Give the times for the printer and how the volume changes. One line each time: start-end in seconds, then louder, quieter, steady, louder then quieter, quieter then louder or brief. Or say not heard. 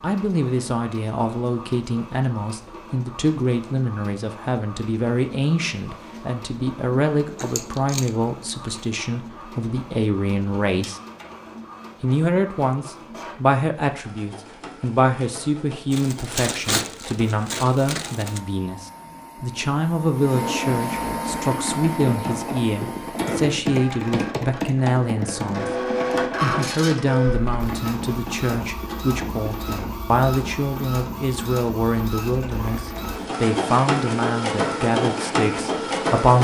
0.0-36.3 louder.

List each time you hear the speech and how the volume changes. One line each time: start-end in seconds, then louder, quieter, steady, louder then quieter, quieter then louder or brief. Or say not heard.
0.0-11.0 steady
12.0-36.3 steady.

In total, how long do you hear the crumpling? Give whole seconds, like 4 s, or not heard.
5 s.